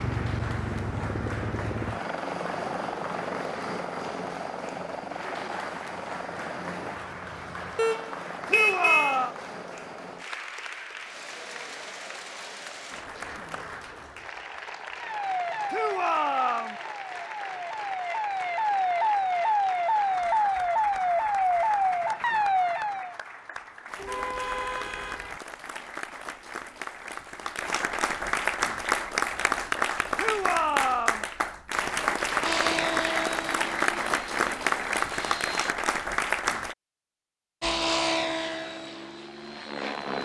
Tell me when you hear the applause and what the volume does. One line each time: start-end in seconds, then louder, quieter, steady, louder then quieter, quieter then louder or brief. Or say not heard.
0.0-36.8 louder.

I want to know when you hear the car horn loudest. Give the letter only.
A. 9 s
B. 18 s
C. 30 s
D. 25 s
A.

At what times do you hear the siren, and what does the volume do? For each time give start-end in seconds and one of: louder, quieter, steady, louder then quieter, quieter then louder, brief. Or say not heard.
15.0-23.1 louder.